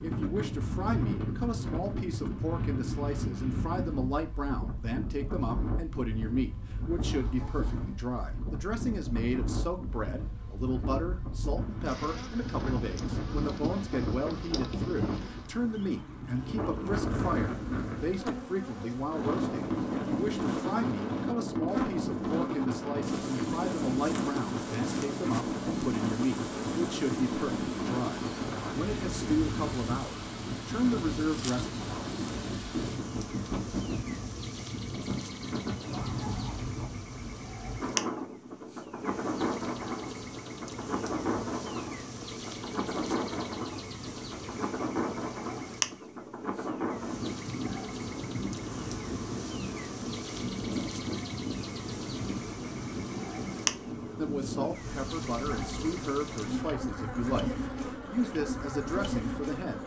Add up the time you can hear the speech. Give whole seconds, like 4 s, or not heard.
37 s.